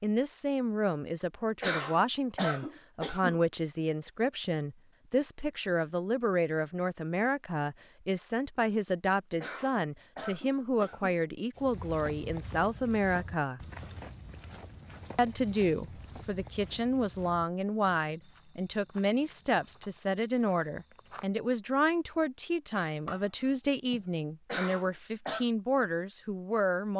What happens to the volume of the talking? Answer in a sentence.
The loudness of the talking stays about the same.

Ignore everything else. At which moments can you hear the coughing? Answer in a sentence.
The coughing can be heard from 1.6 to 3.4 s, from 9.4 to 11.2 s and from 24.4 to 25.4 s.